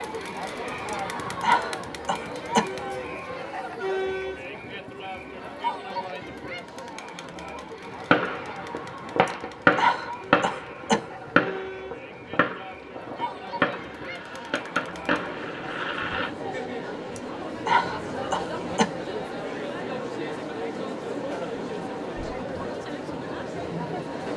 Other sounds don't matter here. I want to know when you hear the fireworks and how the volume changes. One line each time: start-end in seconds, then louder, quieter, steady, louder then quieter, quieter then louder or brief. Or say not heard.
7.8-16.3 quieter.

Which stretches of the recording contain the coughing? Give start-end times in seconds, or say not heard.
0.9-2.6, 9.2-11.0, 17.1-18.9.